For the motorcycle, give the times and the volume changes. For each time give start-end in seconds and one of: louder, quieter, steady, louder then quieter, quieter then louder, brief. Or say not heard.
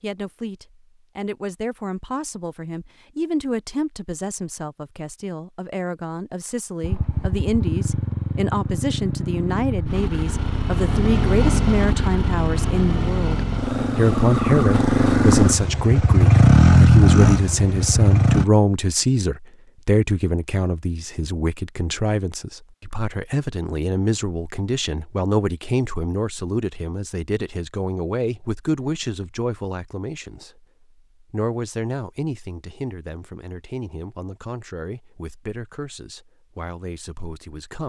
6.8-18.4 louder.